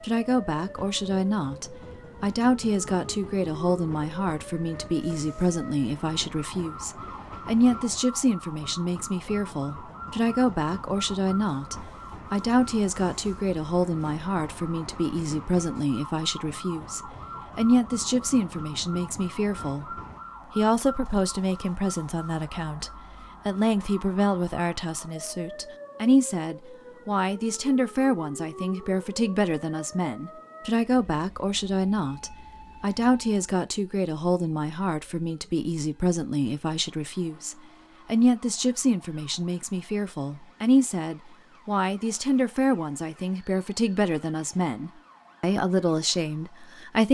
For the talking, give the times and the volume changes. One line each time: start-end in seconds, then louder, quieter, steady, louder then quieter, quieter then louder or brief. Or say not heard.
0.0-19.9 steady
20.6-47.0 steady.